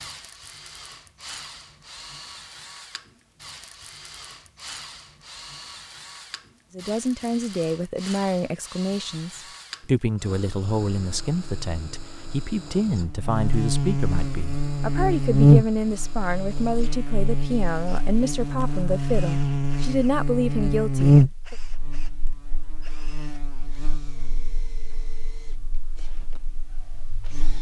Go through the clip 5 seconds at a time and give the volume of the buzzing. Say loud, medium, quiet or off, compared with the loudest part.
off, off, medium, loud, loud, quiet.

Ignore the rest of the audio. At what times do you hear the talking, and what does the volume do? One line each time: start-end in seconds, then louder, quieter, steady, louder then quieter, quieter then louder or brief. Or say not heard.
6.8-21.6 steady.